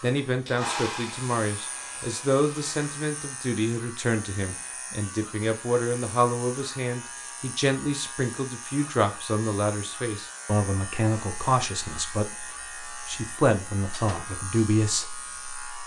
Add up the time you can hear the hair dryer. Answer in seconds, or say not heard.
3 s.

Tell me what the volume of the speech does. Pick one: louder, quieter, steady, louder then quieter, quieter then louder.
steady.